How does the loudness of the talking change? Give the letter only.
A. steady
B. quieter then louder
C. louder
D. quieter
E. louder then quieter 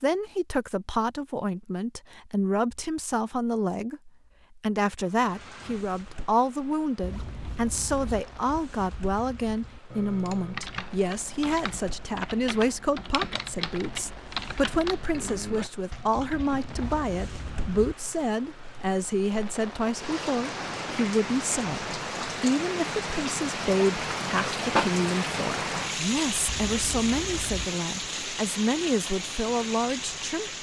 A.